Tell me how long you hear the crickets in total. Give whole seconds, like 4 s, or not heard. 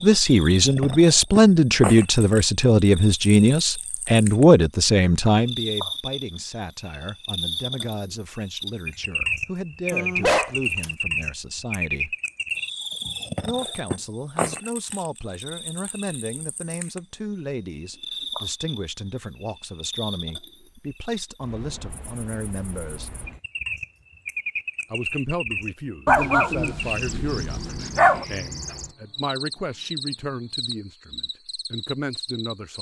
33 s.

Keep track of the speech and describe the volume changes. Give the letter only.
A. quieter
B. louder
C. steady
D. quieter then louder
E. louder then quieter
A.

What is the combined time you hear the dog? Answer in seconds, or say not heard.
3 s.